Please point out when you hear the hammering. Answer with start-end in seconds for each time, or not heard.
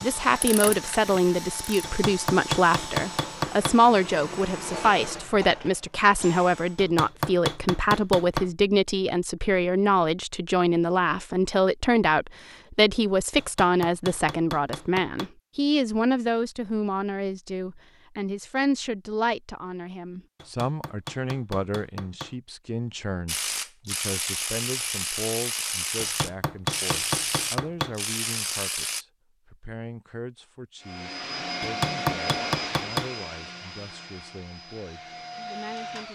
1.8-3.8, 6.8-8.5, 13.3-15.3, 20.4-22.4, 25.9-27.9, 31.6-33.1.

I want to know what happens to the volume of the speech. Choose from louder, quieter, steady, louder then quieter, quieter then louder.
quieter.